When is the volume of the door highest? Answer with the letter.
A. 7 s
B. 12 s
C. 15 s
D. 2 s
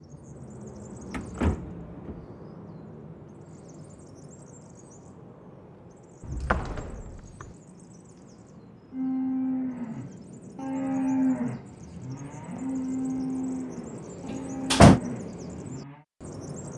C.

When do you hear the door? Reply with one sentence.
You can hear the door from 1.1 to 2.2 s, from 6.2 to 7.5 s and from 14.3 to 15.0 s.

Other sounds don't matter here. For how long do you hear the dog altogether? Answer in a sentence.
You can't hear the dog here.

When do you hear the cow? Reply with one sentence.
You can hear the cow from 8.9 to 16.1 s.